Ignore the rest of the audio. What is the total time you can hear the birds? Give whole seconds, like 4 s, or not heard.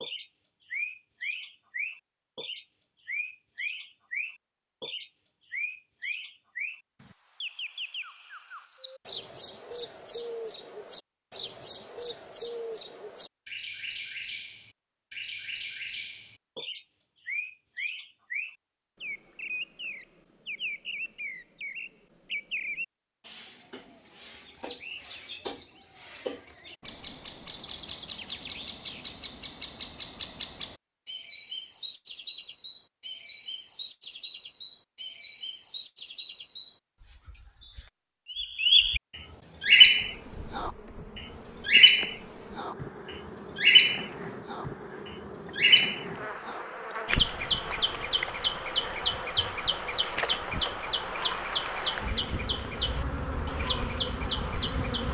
55 s.